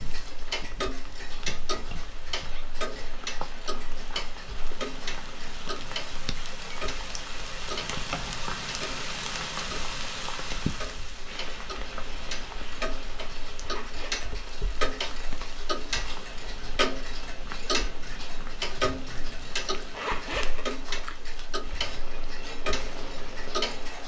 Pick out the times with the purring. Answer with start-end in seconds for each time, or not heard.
not heard.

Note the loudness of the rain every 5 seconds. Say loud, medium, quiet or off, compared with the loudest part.
medium, loud, loud, medium, medium.